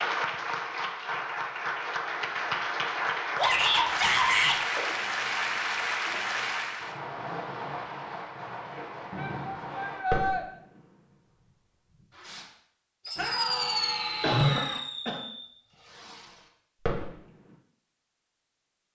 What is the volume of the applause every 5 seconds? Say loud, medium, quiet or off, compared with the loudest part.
loud, loud, off, off.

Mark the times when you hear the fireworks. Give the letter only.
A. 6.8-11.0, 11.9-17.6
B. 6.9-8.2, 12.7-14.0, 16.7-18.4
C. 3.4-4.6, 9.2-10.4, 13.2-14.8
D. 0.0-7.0
A.